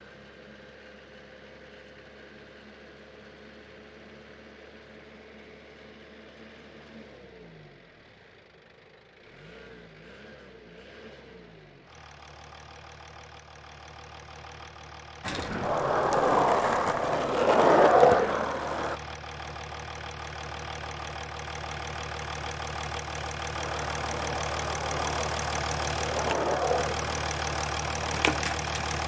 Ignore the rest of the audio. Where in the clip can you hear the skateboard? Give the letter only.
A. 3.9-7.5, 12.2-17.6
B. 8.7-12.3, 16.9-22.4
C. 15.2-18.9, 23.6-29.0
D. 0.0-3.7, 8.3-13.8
C.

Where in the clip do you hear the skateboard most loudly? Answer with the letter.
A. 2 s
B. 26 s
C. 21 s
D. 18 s
D.